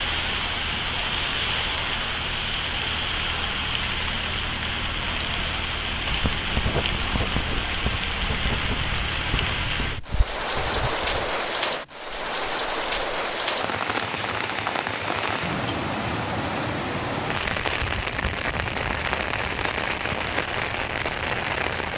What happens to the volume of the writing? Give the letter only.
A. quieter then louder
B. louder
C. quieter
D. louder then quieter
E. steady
C.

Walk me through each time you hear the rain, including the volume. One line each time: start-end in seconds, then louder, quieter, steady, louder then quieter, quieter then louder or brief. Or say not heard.
0.0-21.9 steady.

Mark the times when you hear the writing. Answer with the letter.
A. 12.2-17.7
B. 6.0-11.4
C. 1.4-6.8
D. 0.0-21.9
B.